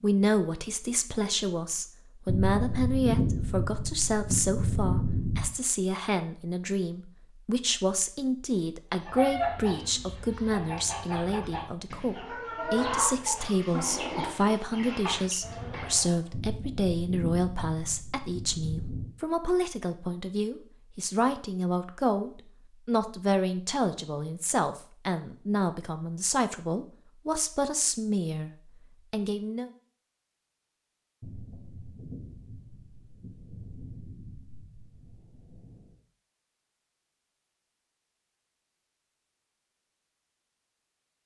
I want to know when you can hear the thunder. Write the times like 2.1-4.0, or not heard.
2.2-5.5, 16.3-19.1, 31.2-36.0.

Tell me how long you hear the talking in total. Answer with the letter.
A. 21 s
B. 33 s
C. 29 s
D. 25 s
C.